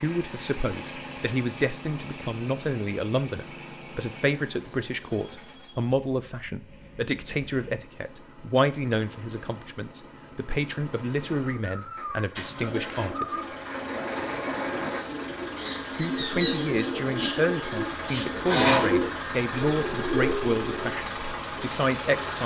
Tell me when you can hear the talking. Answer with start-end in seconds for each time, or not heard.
0.0-13.5, 15.9-22.4.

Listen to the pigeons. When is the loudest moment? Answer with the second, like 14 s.
19 s.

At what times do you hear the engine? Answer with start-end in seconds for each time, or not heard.
0.0-22.4.